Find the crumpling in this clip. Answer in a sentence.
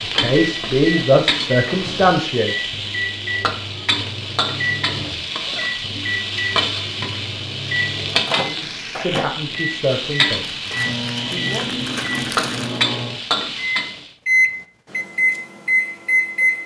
The crumpling can be heard from 10.6 to 12.8 s.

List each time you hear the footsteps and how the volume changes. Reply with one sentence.
The footsteps can't be heard in this clip.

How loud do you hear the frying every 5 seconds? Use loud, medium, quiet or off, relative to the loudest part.
loud, loud, loud, off.